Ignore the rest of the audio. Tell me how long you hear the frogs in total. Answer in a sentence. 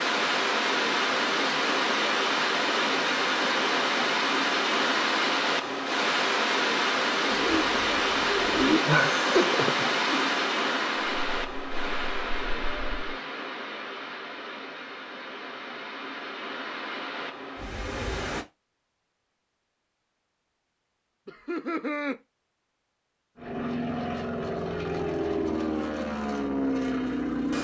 The frogs can't be heard in this clip.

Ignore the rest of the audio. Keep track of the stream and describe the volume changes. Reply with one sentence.
The loudness of the stream goes down.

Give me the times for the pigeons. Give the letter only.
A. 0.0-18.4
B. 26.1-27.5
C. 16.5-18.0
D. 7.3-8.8
D.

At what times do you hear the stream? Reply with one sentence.
The stream can be heard from 0.0 to 18.4 s.